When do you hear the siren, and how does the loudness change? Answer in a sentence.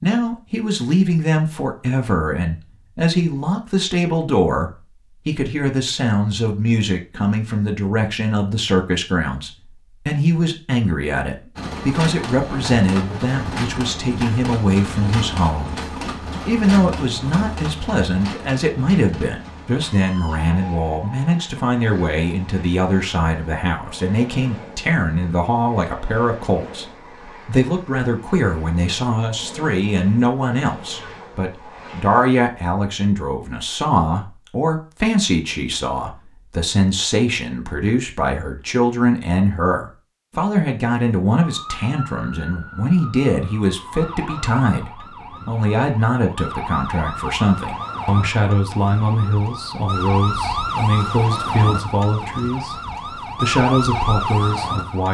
You can hear the siren from 41.4 to 55.0 s, getting louder.